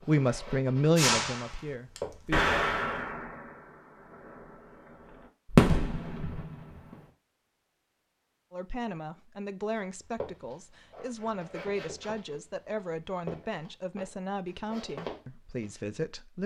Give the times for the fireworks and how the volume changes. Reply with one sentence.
You can hear the fireworks from 0.9 to 7.0 s, getting quieter then louder.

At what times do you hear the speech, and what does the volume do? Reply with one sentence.
You can hear the speech briefly from 0.1 to 2.4 s; and from 8.5 to 16.4 s, at a steady volume.